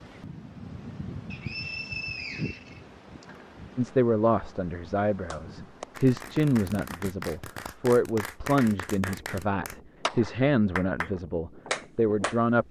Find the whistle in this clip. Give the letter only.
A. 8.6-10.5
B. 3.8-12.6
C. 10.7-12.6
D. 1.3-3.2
D.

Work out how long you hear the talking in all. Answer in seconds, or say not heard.
9 s.